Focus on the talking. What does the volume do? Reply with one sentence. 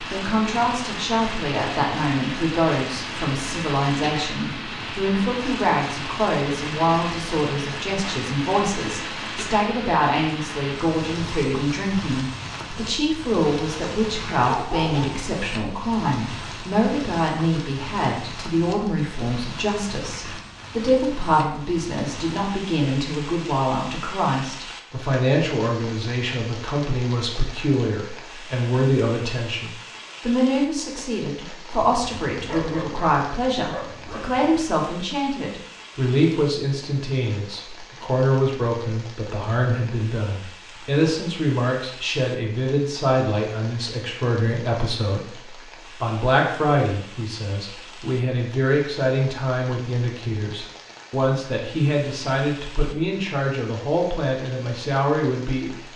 The loudness of the talking stays about the same.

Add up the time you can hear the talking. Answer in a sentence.
The talking can be heard for 55 seconds in total.